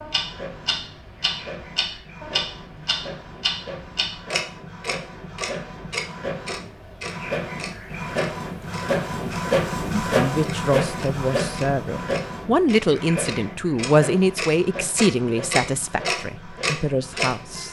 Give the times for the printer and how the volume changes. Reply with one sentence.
The printer can be heard from 0.0 to 17.6 s, getting louder then quieter.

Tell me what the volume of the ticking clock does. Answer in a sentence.
The loudness of the ticking clock goes down, then up.